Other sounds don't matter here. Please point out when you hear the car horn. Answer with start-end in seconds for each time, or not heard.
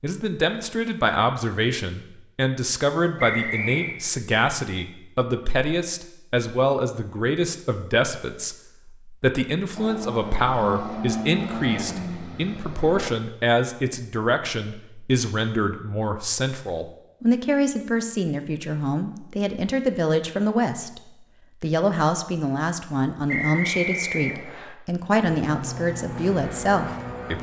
not heard.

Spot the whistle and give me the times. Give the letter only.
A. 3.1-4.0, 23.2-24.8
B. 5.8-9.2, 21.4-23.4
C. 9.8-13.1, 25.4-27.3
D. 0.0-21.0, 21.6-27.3
A.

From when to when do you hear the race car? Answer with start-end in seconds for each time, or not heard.
9.8-13.1, 25.4-27.3.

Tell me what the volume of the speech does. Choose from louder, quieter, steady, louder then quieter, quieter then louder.
steady.